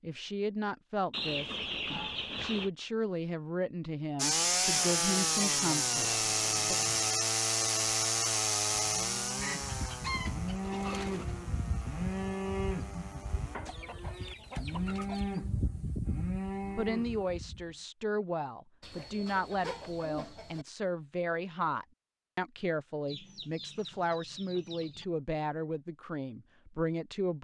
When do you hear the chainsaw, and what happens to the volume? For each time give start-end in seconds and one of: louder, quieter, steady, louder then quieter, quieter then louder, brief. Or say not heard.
4.2-13.6 quieter.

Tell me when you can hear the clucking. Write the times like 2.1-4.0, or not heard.
1.1-2.7, 5.0-7.0, 9.4-11.4, 13.7-15.4, 18.8-20.6, 23.1-25.1.